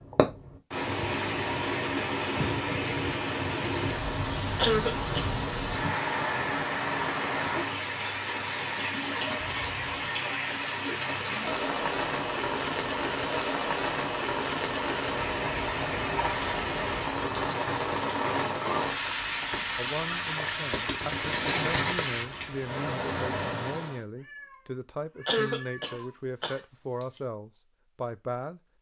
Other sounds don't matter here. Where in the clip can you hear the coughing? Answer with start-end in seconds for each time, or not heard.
4.5-5.3, 25.2-27.1.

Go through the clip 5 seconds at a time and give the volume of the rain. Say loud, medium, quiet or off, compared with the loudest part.
loud, loud, loud, loud, loud, off.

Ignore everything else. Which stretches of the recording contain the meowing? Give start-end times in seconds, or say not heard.
9.4-10.0, 24.1-26.1.